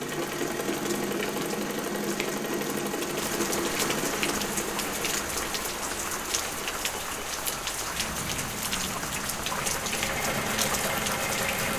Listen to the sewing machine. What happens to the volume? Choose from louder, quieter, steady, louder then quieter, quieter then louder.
quieter then louder.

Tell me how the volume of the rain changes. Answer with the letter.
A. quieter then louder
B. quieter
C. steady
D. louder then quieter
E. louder
E.